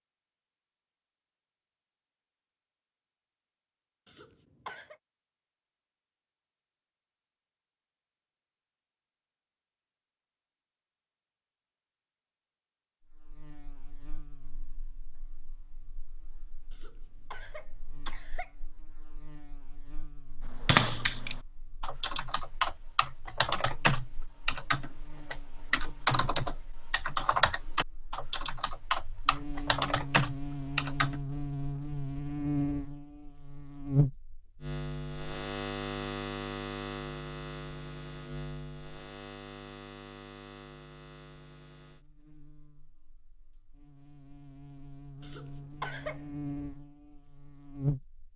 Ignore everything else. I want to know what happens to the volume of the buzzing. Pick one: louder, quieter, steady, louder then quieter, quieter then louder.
louder then quieter.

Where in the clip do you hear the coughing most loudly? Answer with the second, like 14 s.
46 s.